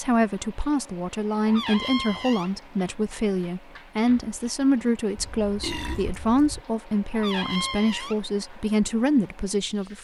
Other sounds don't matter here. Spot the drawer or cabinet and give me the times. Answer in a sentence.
You can hear the drawer or cabinet from 1.4 to 2.5 s and from 7.1 to 8.2 s.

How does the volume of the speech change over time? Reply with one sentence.
The loudness of the speech stays about the same.